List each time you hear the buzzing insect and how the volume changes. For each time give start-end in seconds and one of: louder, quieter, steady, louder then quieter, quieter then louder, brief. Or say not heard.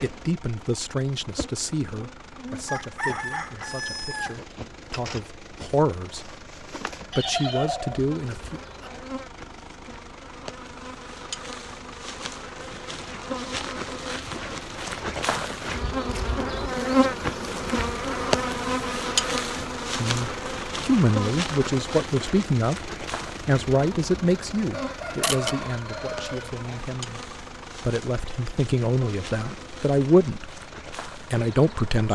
0.0-32.1 louder then quieter.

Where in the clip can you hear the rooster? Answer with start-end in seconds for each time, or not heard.
2.6-4.4, 24.7-26.5.